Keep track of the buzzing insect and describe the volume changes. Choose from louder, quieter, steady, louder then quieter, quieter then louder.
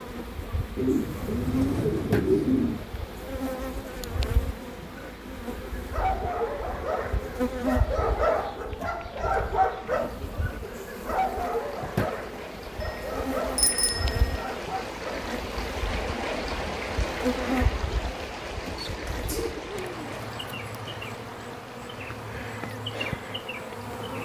steady.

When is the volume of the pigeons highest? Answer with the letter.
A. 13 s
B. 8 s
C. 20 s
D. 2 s
D.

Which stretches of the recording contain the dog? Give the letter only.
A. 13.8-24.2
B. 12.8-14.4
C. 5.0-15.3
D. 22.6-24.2
C.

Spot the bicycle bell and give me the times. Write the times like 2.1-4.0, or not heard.
12.8-14.4.